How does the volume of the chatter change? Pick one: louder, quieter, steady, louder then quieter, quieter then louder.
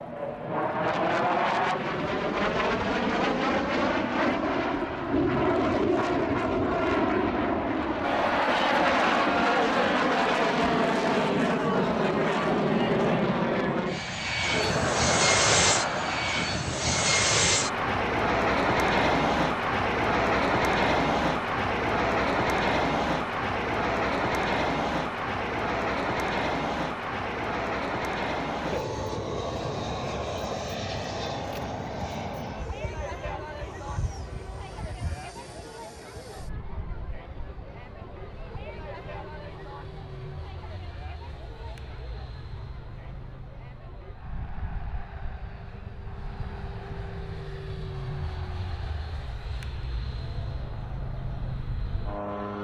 quieter.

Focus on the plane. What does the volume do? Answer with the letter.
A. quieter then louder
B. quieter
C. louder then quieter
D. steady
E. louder
B.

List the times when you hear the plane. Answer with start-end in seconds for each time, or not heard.
0.0-52.5.